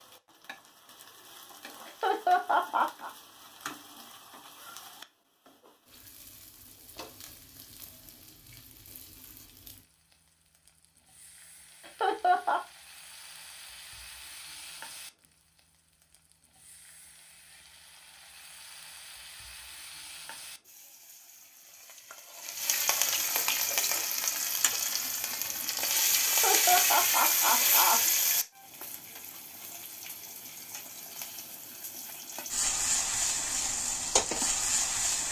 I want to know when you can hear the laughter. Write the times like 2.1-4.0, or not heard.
1.9-3.1, 11.8-12.6, 26.2-28.0.